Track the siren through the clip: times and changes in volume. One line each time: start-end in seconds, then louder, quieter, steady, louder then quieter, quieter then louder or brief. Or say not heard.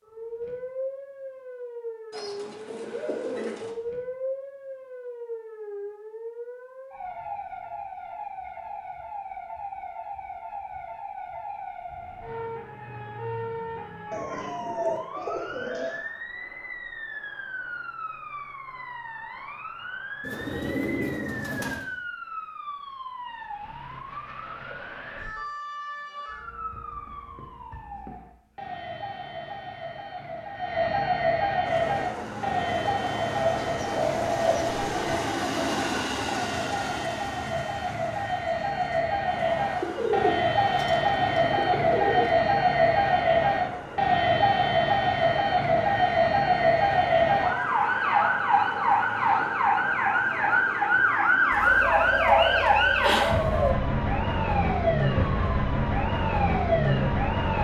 0.0-57.5 louder.